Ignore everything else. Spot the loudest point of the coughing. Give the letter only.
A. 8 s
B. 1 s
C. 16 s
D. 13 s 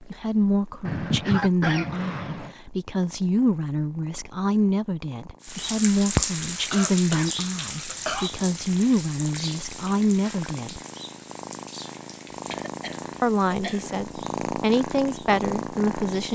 B.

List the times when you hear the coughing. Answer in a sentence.
The coughing can be heard from 0.8 to 2.5 s, from 6.7 to 8.3 s and from 12.3 to 13.9 s.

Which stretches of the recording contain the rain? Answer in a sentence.
The rain can be heard from 5.4 to 16.3 s.